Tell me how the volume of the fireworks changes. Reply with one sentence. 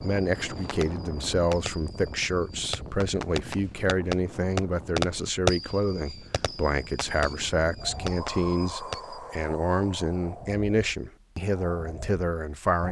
The loudness of the fireworks goes up, then down.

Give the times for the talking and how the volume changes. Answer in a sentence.
The talking can be heard from 0.0 to 12.8 s, at a steady volume.